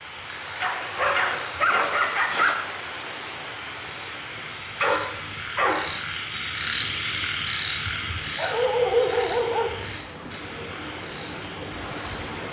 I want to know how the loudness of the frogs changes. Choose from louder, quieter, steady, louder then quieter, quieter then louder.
louder then quieter.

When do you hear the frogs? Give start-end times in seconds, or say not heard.
0.0-12.4.